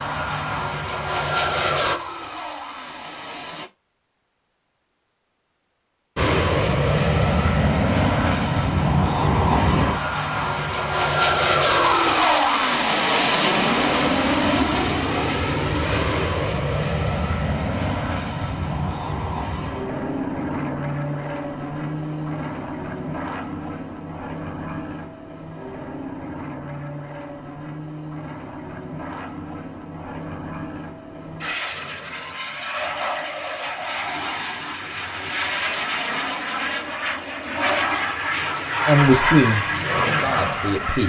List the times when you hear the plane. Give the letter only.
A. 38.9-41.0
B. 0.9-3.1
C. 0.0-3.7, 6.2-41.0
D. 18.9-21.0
C.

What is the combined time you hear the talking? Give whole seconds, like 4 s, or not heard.
2 s.